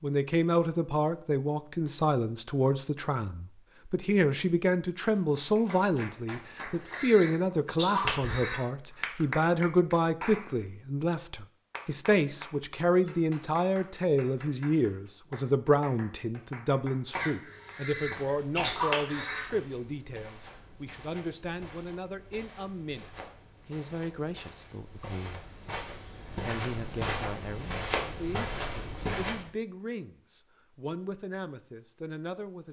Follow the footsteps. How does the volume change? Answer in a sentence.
The volume of the footsteps goes up.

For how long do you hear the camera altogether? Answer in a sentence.
You can hear the camera for 4 seconds altogether.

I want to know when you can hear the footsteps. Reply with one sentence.
The footsteps can be heard from 17.9 to 29.5 s.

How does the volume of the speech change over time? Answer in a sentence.
The loudness of the speech goes down.